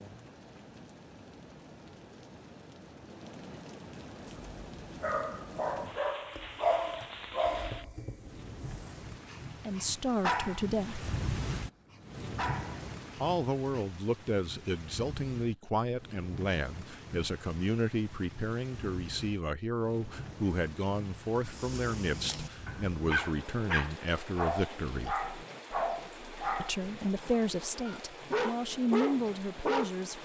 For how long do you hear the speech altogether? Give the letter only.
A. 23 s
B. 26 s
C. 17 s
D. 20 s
C.